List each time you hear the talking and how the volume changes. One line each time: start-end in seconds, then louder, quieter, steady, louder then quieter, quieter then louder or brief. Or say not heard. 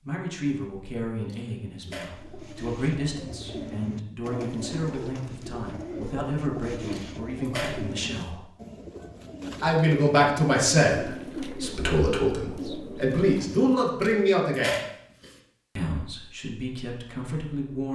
0.1-8.4 steady
9.6-14.8 quieter then louder
15.8-17.9 brief.